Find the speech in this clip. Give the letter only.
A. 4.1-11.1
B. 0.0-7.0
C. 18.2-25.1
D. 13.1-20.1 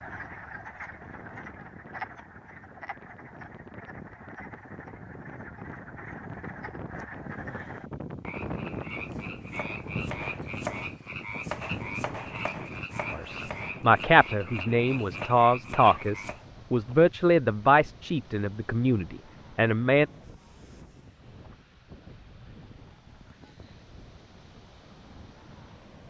D.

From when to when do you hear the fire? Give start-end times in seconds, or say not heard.
not heard.